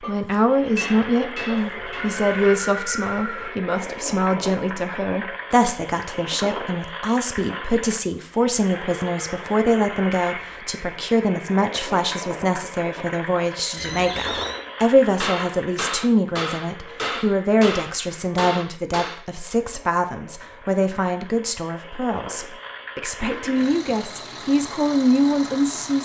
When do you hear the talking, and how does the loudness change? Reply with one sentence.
You can hear the talking from 0.0 to 25.9 s, at a steady volume.